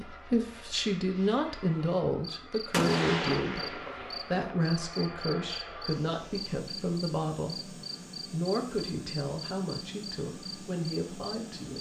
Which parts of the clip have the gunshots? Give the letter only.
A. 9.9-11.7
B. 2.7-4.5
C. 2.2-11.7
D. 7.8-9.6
B.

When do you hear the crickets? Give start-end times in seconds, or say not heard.
2.2-11.7.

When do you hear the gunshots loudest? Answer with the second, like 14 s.
3 s.